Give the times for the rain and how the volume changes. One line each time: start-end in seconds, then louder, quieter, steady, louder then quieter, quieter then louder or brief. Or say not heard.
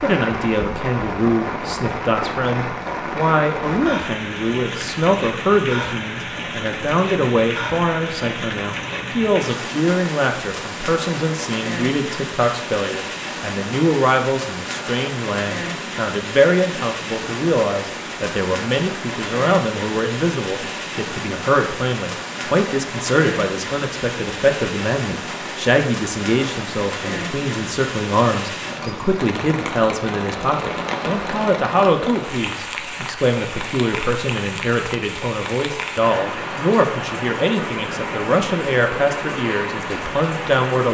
0.0-40.8 steady.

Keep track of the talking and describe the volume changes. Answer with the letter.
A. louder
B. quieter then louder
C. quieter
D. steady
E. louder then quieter
D.